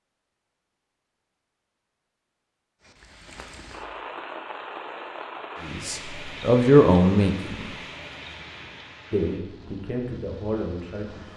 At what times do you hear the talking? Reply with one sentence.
The talking can be heard from 5.6 to 7.7 s and from 9.1 to 11.3 s.